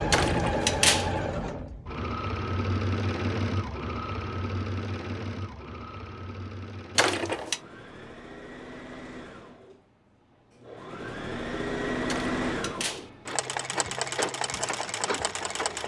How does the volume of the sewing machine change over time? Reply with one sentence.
The volume of the sewing machine goes down, then up.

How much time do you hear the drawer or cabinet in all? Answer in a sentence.
You can hear the drawer or cabinet for 3 seconds altogether.